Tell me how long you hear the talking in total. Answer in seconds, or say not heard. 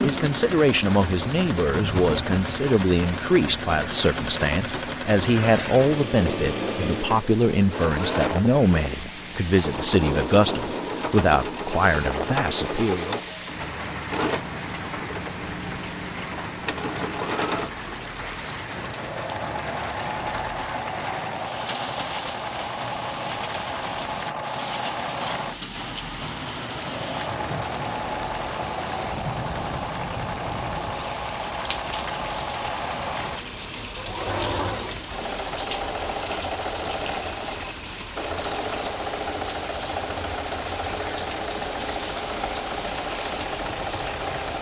13 s.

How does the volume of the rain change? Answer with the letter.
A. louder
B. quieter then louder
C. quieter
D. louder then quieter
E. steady
E.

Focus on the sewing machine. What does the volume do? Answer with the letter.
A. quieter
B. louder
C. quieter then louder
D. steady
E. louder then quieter
D.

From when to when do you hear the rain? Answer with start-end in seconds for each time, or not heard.
0.0-44.5.